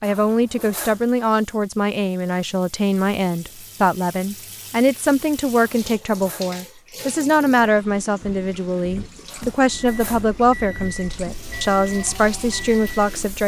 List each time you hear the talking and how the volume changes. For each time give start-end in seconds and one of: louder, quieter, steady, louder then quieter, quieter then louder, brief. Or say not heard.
0.0-13.4 steady.